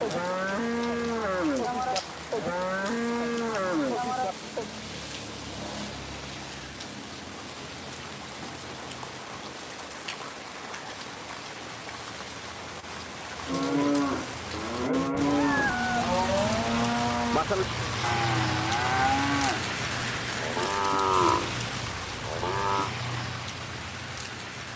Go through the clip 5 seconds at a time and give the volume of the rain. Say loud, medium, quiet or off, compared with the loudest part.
medium, medium, medium, loud, loud.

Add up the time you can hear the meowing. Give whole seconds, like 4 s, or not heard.
2 s.